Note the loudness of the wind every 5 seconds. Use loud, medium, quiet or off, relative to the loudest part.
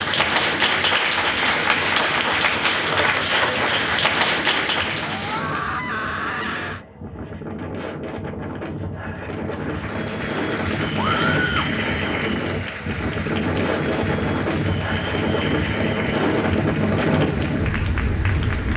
quiet, medium, loud, loud.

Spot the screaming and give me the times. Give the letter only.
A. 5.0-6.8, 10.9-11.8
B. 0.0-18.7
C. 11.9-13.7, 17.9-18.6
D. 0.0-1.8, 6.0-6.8
A.